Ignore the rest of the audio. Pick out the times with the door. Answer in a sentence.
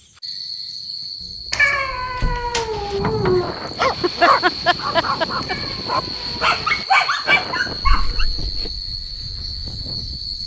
The door can be heard from 1.9 to 3.5 s and from 7.8 to 8.7 s.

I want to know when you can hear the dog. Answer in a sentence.
You can hear the dog from 2.9 to 8.2 s.